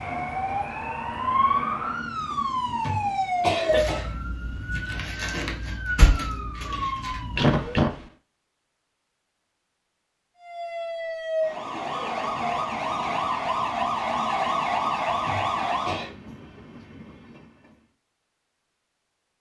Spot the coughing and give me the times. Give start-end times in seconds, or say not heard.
2.6-4.1, 7.3-8.1, 15.1-16.1.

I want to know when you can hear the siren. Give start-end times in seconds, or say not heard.
0.0-7.8, 10.3-16.1.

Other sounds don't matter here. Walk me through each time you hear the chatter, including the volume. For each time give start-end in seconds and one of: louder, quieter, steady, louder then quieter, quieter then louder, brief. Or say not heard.
not heard.